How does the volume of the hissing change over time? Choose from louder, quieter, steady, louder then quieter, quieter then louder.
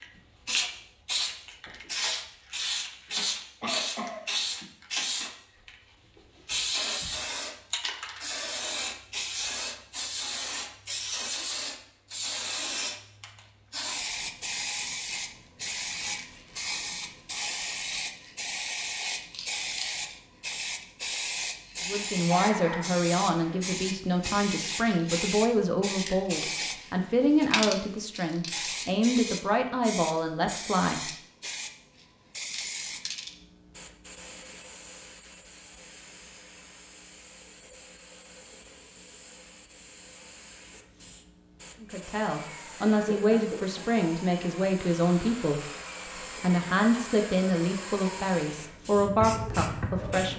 quieter.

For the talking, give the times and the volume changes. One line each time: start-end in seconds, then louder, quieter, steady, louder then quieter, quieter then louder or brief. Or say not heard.
21.9-31.1 steady
41.8-50.3 steady.